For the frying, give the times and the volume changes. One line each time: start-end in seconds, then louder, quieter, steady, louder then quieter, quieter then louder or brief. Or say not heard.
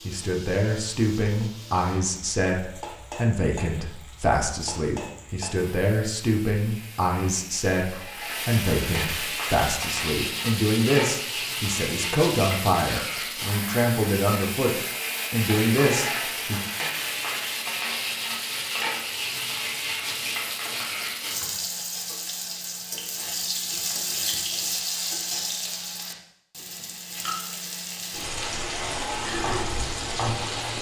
0.0-30.7 louder.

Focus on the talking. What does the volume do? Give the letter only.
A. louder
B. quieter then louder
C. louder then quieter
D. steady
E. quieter
D.